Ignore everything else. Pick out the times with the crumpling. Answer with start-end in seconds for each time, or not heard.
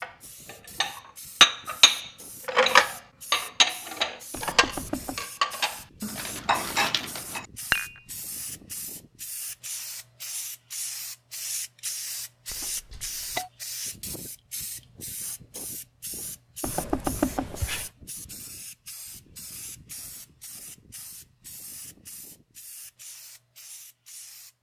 6.2-7.4.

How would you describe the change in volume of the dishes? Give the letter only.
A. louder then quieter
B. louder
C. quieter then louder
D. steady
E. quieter
E.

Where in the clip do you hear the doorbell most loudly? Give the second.
17 s.